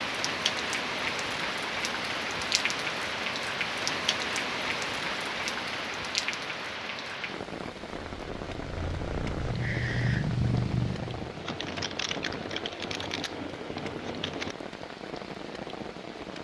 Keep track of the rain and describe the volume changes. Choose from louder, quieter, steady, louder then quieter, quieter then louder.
quieter.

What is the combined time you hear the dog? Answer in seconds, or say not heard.
not heard.